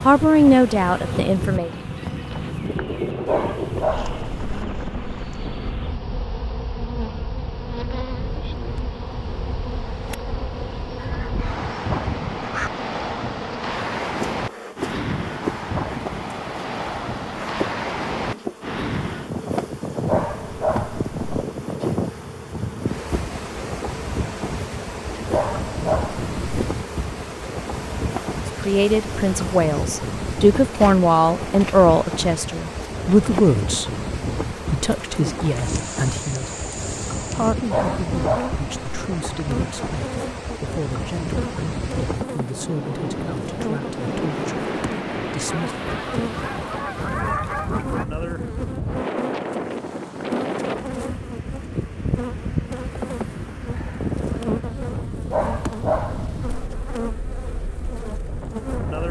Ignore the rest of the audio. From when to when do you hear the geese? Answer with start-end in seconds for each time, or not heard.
10.9-12.7, 45.5-48.0.